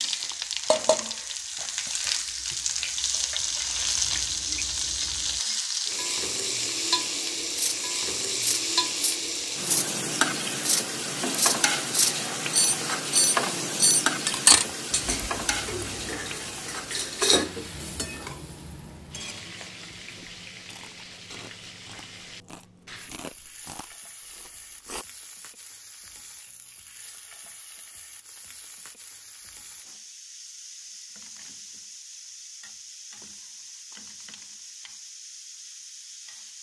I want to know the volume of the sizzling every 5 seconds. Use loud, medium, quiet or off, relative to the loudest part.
loud, loud, loud, medium, quiet, quiet, quiet, quiet.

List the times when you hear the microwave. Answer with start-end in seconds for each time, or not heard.
not heard.